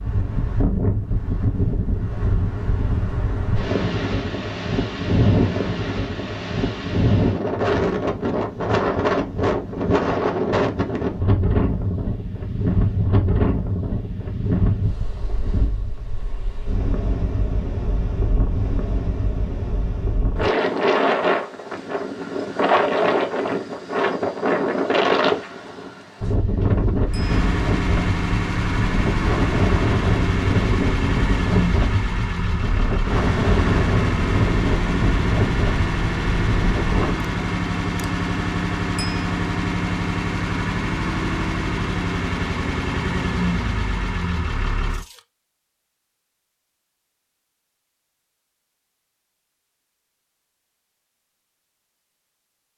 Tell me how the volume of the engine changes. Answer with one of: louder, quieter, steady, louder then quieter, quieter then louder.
steady.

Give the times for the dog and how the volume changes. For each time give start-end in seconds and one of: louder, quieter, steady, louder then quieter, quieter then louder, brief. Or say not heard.
not heard.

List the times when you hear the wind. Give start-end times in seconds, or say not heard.
0.0-37.1.